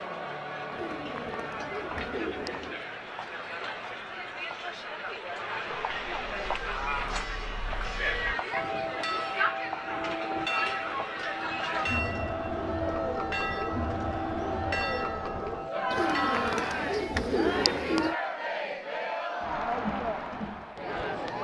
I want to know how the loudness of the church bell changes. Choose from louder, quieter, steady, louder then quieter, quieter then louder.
louder.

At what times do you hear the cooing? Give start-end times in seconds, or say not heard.
0.7-2.8, 15.9-18.1.